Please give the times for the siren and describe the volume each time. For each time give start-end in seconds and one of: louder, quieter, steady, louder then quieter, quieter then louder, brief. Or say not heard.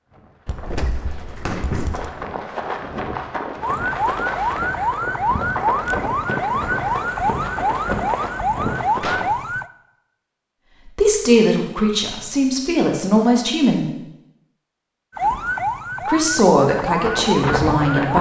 3.6-9.7 steady
15.2-18.1 brief.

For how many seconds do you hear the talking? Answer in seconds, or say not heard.
5 s.